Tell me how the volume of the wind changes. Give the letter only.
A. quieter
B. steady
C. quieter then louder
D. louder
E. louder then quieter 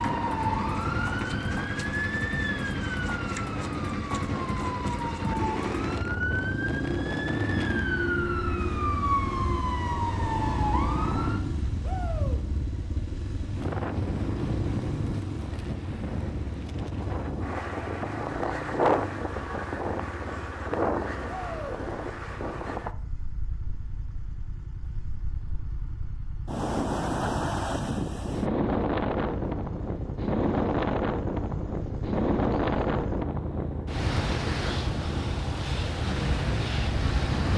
D.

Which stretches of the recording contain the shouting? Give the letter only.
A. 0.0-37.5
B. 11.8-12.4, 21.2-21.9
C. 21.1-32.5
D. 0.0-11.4
B.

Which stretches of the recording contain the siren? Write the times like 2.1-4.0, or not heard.
0.0-11.4.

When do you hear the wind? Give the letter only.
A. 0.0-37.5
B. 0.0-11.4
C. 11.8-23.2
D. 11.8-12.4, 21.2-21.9
A.